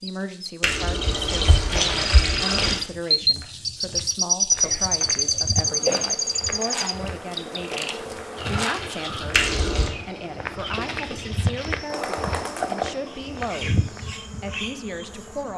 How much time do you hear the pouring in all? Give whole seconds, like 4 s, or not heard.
3 s.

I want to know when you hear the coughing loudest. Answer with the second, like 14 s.
6 s.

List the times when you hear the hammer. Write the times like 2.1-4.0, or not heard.
not heard.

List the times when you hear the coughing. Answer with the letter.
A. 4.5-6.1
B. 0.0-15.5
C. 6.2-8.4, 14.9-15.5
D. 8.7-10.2
A.